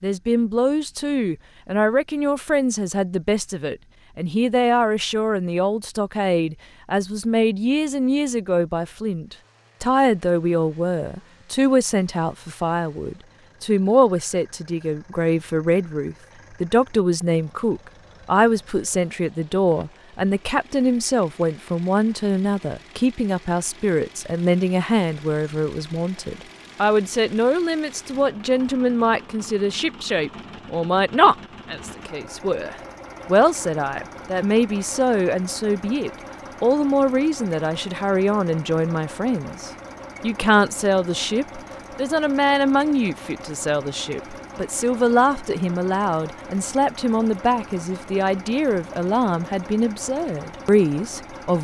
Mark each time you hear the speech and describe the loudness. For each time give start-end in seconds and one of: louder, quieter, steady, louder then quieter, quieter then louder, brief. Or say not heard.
0.0-51.5 steady.